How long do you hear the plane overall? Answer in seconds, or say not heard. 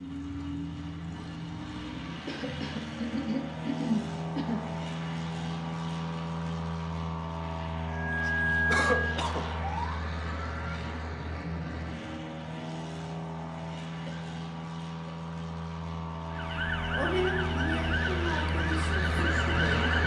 20 s.